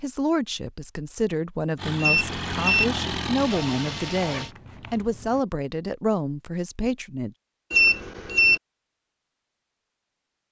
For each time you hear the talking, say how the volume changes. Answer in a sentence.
You can hear the talking from 0.0 to 7.3 s, at a steady volume.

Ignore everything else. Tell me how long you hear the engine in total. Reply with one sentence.
The engine can be heard for 3 seconds in total.